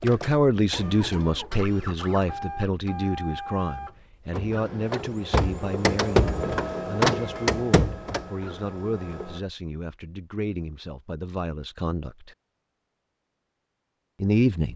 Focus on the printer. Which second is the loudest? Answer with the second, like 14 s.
7 s.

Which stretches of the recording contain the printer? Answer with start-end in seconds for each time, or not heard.
0.0-9.4.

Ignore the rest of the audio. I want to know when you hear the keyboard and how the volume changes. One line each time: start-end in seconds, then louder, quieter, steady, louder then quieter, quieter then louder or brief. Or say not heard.
not heard.